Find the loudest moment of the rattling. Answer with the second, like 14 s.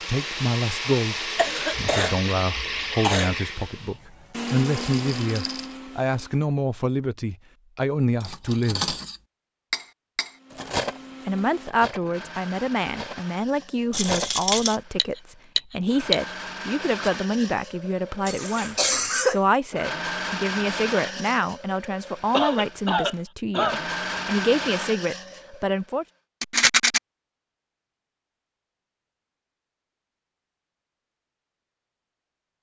27 s.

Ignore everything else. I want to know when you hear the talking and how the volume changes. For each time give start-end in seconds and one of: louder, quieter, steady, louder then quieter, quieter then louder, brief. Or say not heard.
0.1-8.9 steady
11.2-26.1 steady.